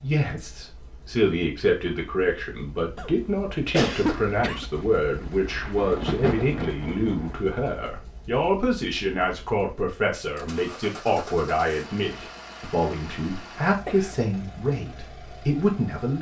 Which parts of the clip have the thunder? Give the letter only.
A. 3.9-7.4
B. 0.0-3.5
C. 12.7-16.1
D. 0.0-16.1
A.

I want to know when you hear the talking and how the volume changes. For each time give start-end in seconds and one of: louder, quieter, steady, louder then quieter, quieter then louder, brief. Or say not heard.
0.0-16.1 steady.